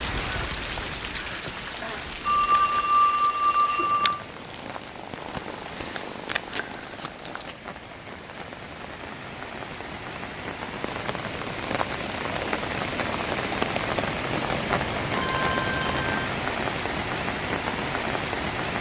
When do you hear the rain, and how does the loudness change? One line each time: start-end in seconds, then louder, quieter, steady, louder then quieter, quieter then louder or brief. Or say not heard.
0.0-18.7 quieter then louder.